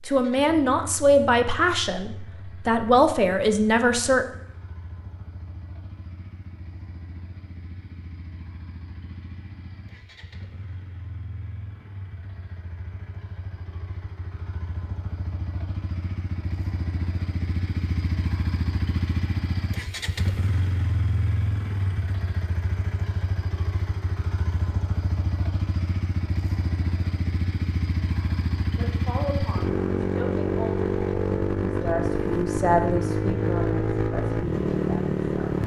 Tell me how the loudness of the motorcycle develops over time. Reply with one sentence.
The loudness of the motorcycle goes up.